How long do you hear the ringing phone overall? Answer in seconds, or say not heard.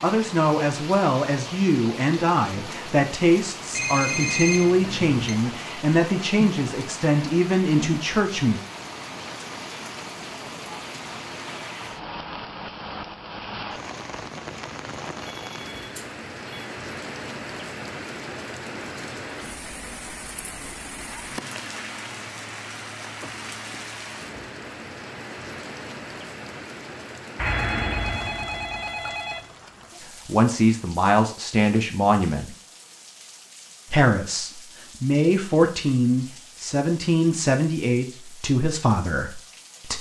5 s.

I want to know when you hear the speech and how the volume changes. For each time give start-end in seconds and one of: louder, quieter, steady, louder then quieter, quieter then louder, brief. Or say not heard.
0.0-8.6 steady
30.2-32.5 brief
33.9-39.9 steady.